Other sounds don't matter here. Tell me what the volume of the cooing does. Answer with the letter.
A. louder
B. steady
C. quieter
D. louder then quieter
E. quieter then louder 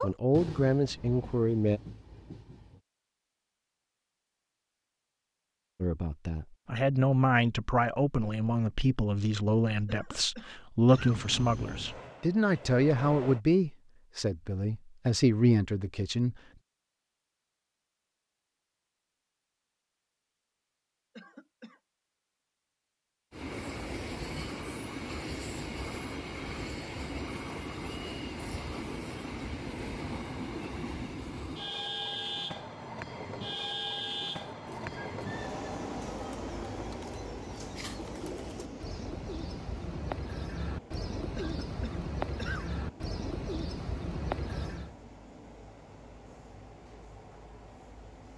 A.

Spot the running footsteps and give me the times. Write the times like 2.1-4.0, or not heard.
not heard.